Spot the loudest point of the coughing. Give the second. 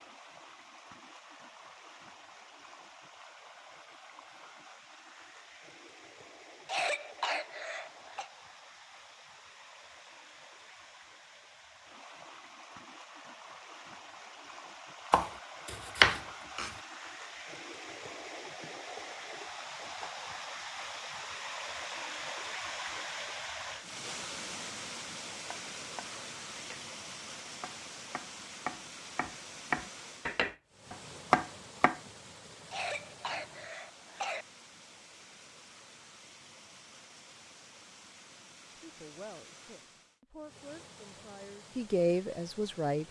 7 s.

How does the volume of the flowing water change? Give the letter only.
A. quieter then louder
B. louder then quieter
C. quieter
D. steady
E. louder
B.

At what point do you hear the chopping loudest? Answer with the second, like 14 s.
16 s.